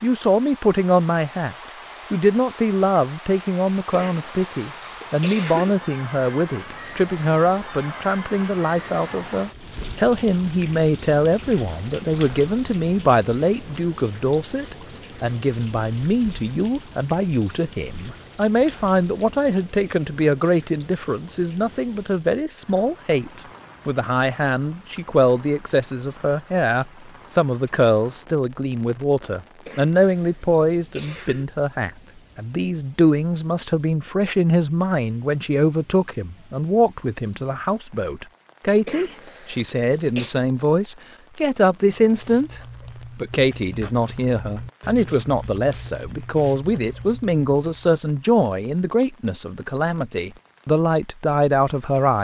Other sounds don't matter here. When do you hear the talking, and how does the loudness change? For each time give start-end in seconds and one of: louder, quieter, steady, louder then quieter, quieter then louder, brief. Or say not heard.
0.0-52.1 steady.